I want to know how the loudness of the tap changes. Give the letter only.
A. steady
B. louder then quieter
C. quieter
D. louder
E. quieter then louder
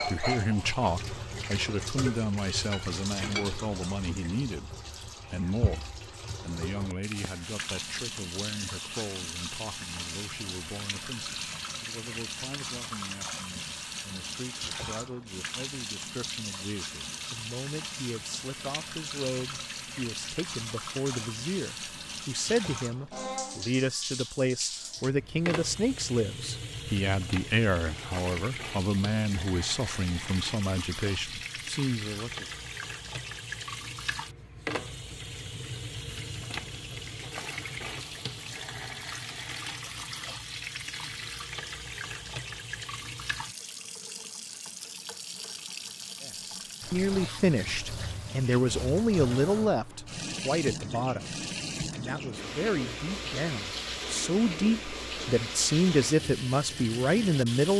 A.